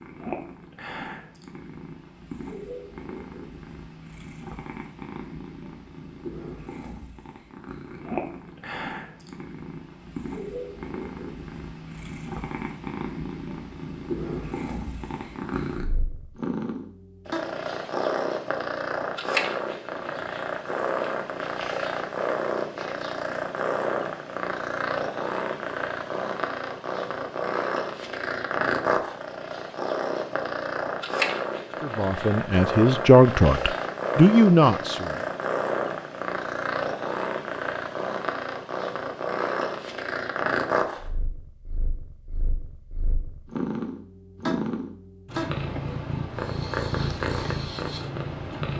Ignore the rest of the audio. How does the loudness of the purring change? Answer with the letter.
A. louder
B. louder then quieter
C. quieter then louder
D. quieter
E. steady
A.